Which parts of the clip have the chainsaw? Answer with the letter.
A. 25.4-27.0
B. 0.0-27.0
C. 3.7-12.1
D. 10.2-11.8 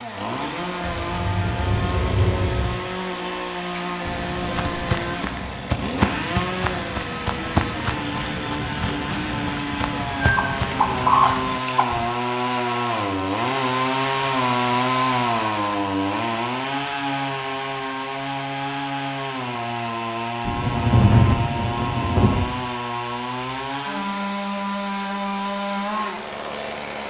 B.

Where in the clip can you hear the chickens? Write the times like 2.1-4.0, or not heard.
10.2-11.8.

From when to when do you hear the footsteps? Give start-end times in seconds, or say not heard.
3.7-12.1.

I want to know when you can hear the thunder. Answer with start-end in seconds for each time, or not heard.
0.8-2.8, 20.4-22.4.